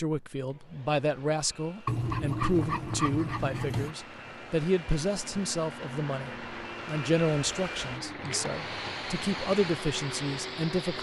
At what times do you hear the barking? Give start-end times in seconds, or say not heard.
1.9-4.0.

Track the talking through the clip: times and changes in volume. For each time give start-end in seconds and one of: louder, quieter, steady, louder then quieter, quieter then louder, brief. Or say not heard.
0.0-10.9 steady.